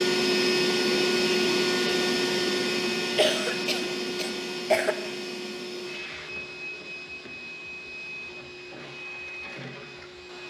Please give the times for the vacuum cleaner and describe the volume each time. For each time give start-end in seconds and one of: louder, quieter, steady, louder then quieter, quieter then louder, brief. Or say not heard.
0.0-10.4 quieter.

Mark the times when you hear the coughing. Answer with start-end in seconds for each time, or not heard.
3.1-5.0.